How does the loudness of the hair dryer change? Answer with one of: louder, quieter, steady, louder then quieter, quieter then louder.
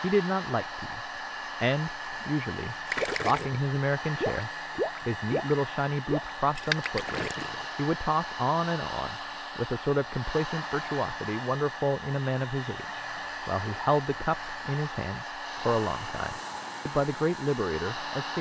steady.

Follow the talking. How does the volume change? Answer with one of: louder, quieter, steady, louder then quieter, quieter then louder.
steady.